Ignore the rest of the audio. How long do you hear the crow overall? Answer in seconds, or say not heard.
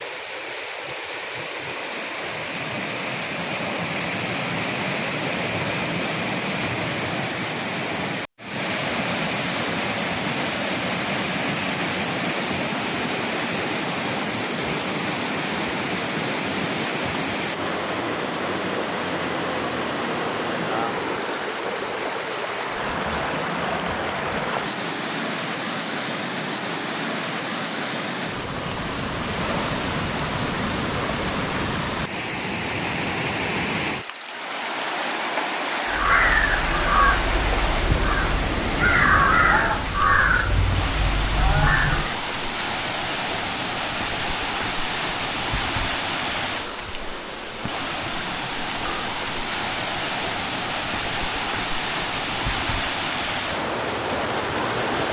6 s.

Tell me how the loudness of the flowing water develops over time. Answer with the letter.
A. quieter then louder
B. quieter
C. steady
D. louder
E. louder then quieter
C.